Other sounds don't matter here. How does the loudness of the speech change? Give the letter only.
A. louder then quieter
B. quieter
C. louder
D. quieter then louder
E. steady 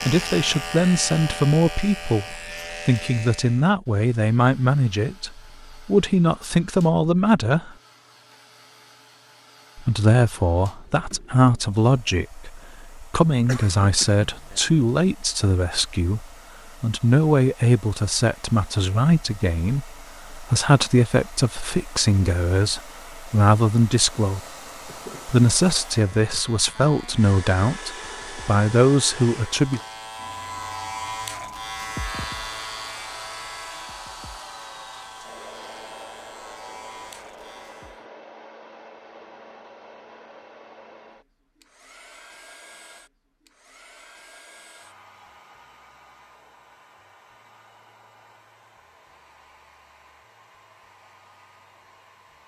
E.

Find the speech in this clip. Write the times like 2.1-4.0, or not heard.
0.1-7.7, 9.8-24.4, 25.2-29.8.